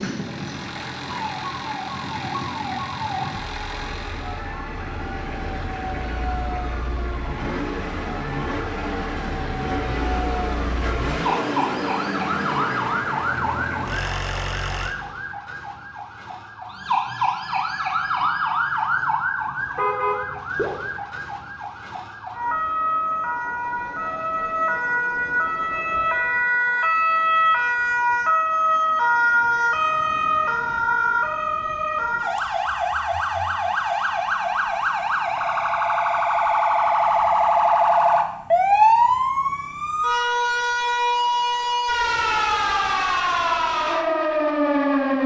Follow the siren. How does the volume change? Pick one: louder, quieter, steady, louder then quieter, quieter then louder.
louder.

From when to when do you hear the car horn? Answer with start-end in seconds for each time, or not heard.
19.8-20.7.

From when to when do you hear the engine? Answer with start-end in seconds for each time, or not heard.
0.0-14.9.